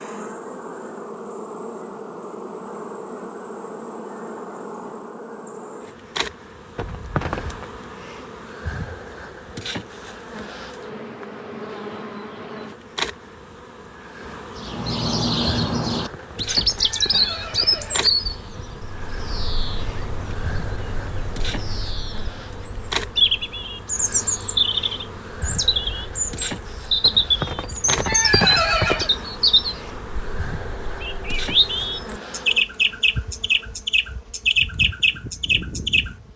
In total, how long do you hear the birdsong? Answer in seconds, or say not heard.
22 s.